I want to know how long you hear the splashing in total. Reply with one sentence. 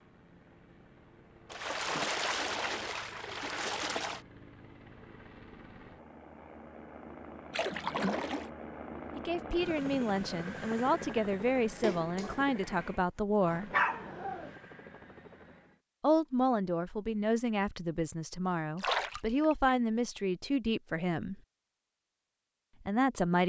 You can hear the splashing for 5 seconds altogether.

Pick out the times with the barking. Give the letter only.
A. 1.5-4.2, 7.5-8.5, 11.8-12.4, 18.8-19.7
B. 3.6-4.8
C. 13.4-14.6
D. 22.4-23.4
C.